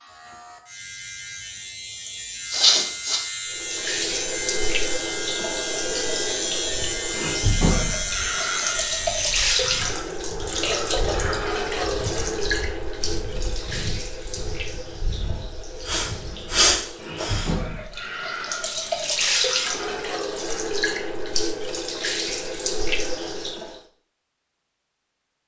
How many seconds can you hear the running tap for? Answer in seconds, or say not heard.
20 s.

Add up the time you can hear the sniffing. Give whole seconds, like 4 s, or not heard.
3 s.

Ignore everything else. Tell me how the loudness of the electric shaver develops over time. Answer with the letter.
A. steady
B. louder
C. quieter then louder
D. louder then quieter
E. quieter
B.